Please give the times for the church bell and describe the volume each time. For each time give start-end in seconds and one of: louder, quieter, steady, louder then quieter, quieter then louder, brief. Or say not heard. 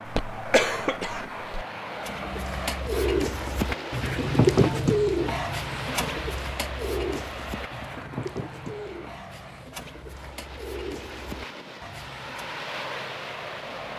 not heard.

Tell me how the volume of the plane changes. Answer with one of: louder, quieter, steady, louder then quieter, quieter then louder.
quieter then louder.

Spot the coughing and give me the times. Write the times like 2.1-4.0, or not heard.
0.1-1.4.